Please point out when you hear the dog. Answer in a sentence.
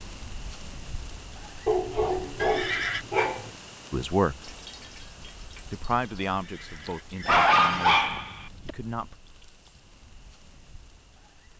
You can hear the dog from 1.6 to 3.5 s and from 7.2 to 8.8 s.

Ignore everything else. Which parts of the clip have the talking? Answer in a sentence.
The talking can be heard from 3.9 to 4.3 s and from 5.7 to 9.2 s.